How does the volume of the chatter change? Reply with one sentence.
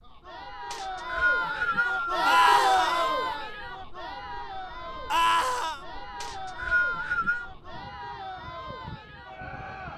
The volume of the chatter goes up, then down.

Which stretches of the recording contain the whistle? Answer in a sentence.
The whistle can be heard from 0.7 to 2.5 s and from 6.2 to 7.5 s.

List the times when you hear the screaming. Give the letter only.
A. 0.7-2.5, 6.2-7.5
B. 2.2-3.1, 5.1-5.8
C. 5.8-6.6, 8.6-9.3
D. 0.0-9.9
B.